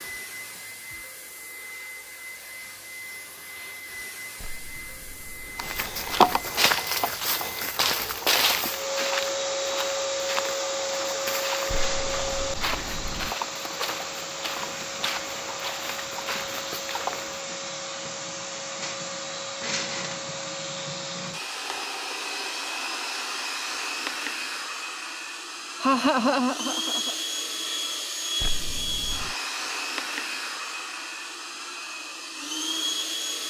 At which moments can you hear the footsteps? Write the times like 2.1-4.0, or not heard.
5.5-17.4.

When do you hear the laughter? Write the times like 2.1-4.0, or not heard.
25.8-27.1.